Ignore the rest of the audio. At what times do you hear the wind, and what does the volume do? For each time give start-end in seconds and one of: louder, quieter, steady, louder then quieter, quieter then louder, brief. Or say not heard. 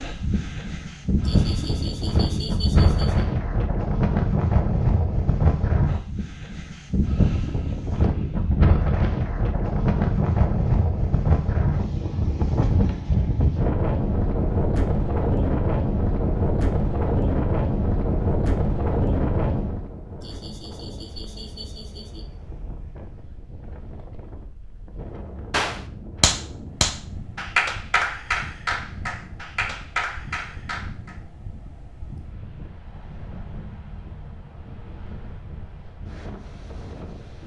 0.0-37.4 quieter.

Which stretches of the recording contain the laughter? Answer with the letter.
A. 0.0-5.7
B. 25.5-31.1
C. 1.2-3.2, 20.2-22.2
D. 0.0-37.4
C.